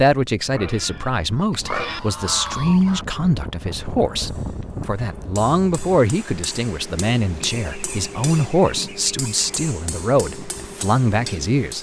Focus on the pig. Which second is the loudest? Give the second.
2 s.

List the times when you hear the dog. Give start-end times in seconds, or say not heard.
not heard.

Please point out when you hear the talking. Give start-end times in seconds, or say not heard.
0.0-11.7.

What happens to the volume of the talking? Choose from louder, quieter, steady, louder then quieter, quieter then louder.
steady.